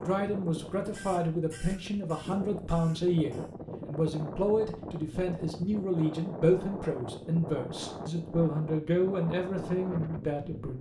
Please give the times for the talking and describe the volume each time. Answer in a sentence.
You can hear the talking from 0.0 to 10.7 s, at a steady volume.